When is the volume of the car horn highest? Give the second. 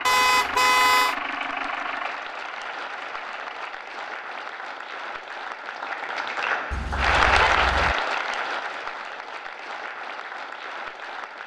1 s.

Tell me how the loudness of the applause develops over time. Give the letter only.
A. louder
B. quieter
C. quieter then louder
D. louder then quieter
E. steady
D.